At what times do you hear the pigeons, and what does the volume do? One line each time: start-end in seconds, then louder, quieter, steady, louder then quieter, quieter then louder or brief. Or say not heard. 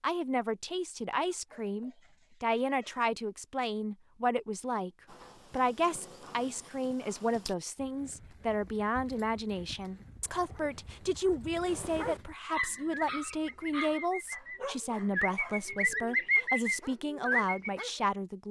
12.7-17.9 louder.